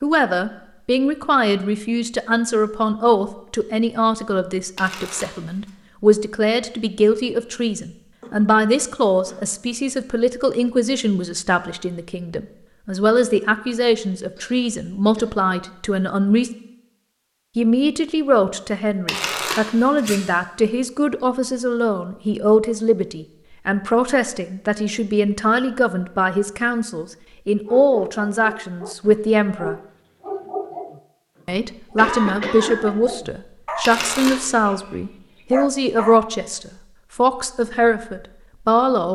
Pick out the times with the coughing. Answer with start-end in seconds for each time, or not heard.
8.2-9.5, 14.3-15.3, 31.4-33.0.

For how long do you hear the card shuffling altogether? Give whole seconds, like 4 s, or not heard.
3 s.